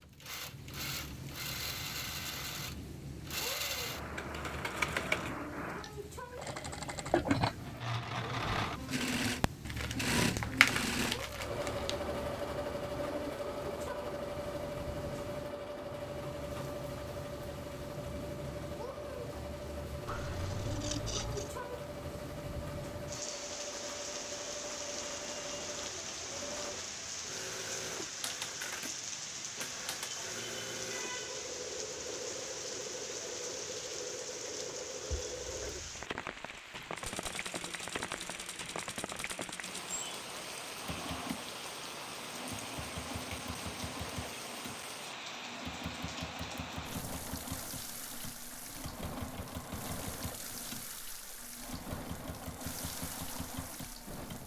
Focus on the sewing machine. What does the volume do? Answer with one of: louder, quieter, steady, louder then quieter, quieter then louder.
quieter.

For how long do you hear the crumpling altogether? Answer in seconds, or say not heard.
2 s.